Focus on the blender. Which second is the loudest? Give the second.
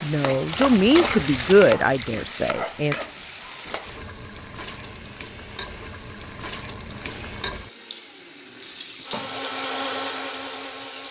10 s.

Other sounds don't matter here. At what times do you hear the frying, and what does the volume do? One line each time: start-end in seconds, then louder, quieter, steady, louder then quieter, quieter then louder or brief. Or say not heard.
0.0-11.0 quieter then louder.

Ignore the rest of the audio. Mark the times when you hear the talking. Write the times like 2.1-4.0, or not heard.
0.0-3.0.